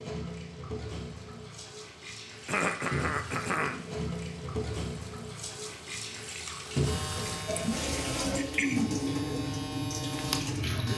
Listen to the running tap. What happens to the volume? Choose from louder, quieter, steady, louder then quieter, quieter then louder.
louder.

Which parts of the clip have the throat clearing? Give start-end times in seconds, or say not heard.
2.5-3.8, 7.5-9.4.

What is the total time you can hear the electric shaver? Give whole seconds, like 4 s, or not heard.
4 s.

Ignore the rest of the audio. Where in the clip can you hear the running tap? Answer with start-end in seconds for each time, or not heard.
0.0-10.9.